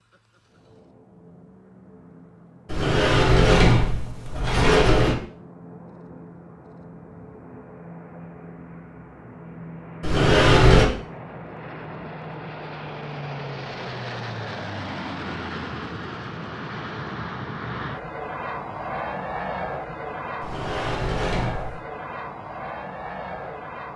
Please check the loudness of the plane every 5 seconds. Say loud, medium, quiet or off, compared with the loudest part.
quiet, medium, loud, loud, loud.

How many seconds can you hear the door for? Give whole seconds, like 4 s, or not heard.
5 s.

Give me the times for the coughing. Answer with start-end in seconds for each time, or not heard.
not heard.